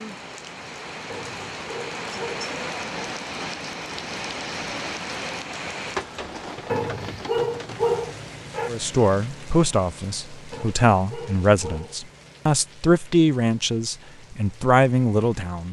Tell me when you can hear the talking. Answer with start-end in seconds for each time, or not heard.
8.7-15.6.